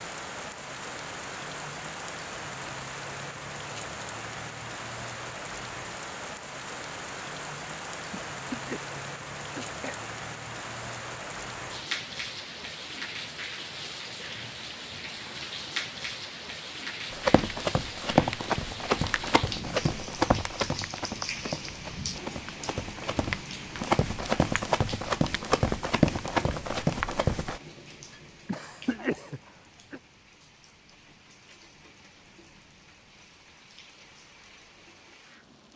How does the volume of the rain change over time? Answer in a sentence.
The volume of the rain goes down.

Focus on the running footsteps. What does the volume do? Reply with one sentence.
The volume of the running footsteps goes down, then up.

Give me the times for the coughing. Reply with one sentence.
The coughing can be heard from 8.1 to 10.0 s and from 28.4 to 30.0 s.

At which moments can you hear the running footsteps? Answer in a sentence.
The running footsteps can be heard from 17.1 to 27.6 s.